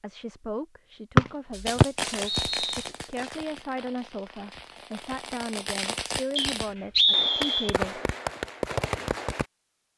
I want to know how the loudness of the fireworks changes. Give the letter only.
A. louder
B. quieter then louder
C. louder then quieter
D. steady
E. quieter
B.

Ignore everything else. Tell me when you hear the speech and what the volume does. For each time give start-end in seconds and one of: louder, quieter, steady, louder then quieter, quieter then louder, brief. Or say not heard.
0.0-8.0 steady.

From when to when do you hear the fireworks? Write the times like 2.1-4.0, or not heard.
1.5-9.4.